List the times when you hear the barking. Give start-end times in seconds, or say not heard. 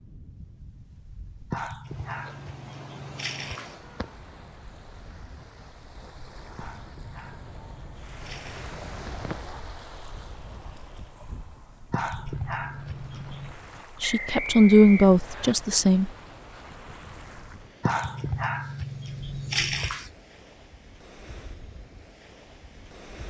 1.5-4.1, 6.5-9.4, 11.9-13.6, 17.8-20.1.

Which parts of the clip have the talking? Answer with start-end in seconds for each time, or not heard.
14.0-16.1.